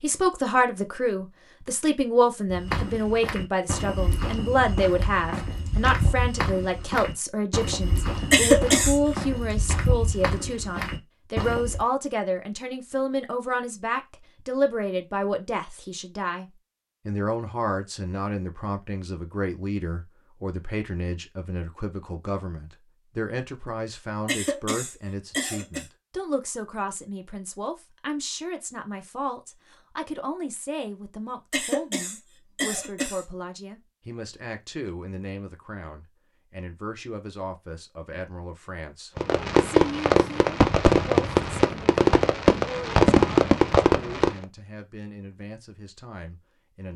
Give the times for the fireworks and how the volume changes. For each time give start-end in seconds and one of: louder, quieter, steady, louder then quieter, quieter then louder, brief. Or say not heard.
39.1-44.5 steady.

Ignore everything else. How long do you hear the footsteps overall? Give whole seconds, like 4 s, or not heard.
9 s.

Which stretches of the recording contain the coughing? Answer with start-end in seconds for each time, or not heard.
8.3-9.0, 24.2-25.9, 31.5-33.2.